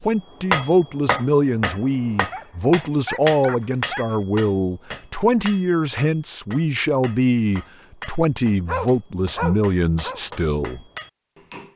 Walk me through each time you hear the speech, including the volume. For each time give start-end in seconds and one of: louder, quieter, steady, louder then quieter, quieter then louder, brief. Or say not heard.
0.0-10.8 steady.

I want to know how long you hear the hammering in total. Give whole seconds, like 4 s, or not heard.
11 s.